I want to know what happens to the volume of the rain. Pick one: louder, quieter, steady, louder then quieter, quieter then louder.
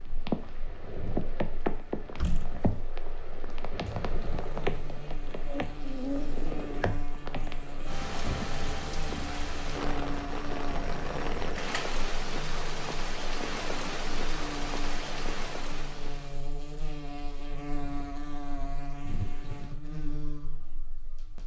steady.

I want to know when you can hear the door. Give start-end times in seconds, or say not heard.
2.1-2.8, 11.6-12.0, 19.1-19.8.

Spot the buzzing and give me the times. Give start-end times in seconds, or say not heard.
0.0-21.4.